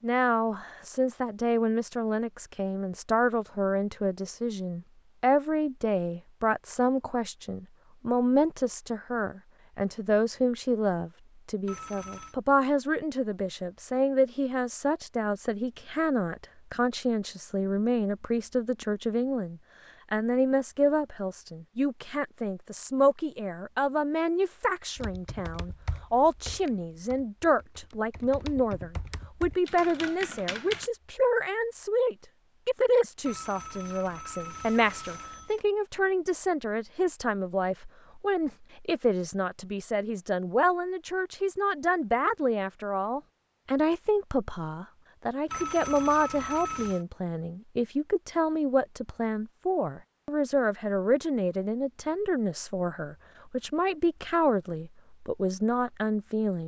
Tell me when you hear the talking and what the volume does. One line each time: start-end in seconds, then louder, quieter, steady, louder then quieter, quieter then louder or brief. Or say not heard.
0.0-56.6 steady.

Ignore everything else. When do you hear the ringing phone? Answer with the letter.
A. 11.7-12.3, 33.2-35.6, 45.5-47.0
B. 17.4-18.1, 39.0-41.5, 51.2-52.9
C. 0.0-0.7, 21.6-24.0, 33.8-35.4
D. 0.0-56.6
A.